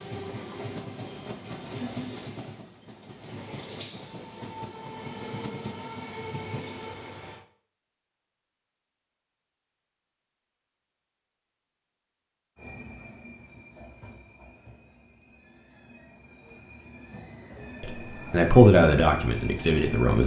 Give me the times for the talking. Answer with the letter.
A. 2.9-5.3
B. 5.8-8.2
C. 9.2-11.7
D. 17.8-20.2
D.